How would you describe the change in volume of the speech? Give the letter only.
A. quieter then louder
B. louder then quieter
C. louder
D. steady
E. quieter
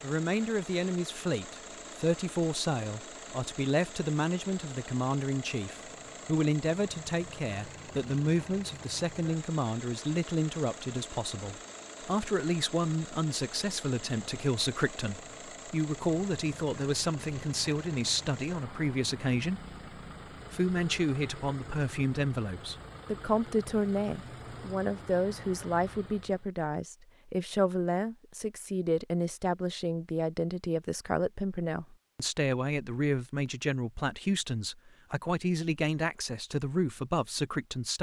D.